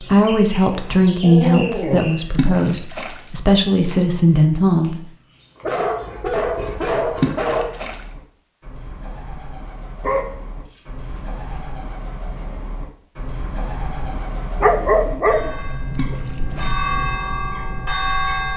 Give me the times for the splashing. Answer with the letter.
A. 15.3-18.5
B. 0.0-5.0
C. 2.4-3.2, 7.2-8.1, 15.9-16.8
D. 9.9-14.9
C.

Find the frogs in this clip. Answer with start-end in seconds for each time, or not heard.
not heard.